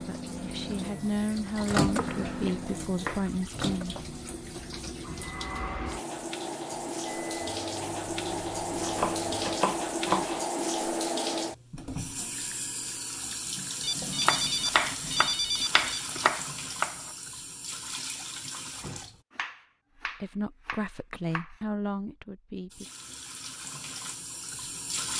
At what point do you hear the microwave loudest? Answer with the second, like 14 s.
2 s.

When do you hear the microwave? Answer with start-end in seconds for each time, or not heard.
0.0-9.5.